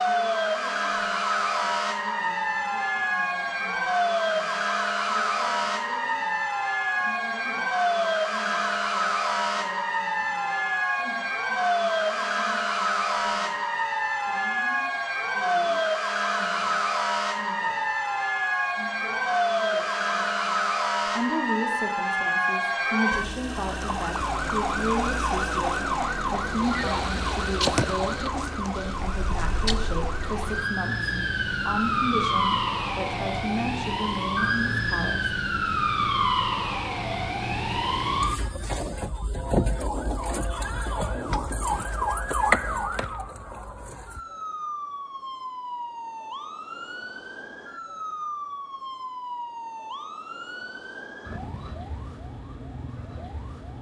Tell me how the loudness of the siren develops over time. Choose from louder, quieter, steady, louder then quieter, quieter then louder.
quieter.